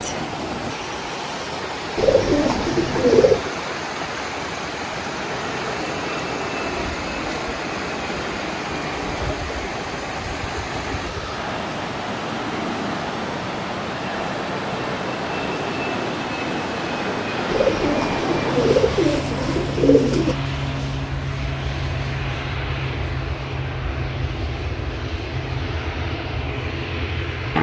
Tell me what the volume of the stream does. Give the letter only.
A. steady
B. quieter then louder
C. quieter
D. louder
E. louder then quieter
A.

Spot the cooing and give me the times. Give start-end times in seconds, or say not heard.
1.9-3.5, 17.4-20.4.